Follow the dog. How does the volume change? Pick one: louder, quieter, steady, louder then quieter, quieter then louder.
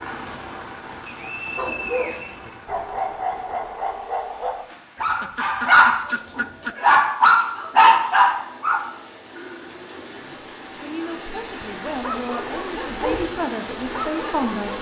louder then quieter.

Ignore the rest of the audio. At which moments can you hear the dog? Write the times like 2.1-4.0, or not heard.
1.6-8.8, 11.4-14.7.